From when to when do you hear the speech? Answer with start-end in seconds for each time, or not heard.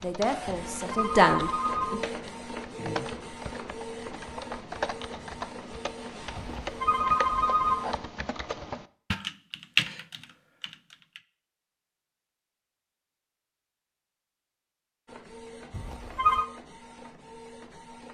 0.0-2.0.